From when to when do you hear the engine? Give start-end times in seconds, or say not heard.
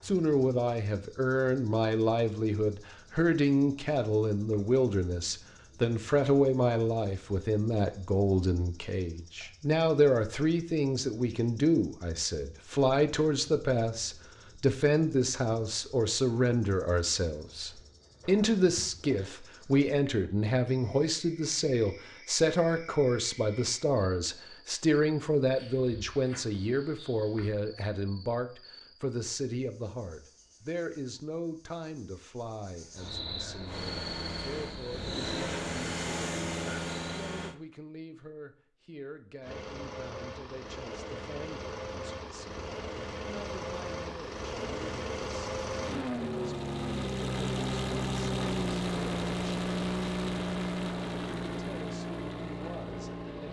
33.6-37.5, 39.4-53.4.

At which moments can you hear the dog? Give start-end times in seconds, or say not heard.
not heard.